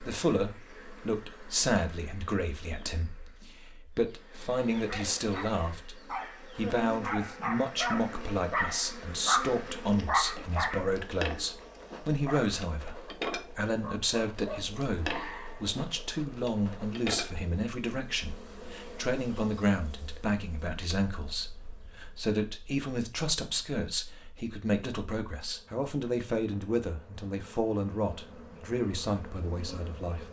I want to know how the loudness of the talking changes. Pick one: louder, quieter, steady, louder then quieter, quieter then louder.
steady.